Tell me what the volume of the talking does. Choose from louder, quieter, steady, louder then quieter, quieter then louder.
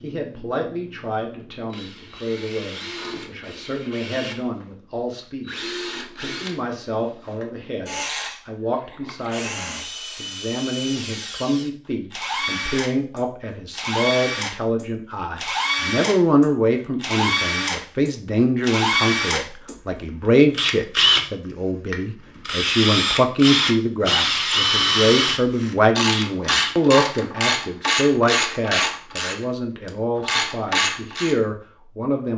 louder.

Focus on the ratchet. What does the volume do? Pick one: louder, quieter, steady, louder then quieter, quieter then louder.
quieter then louder.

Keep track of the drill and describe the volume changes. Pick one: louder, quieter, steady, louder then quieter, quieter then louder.
louder.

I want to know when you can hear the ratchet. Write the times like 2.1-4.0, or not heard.
25.5-31.4.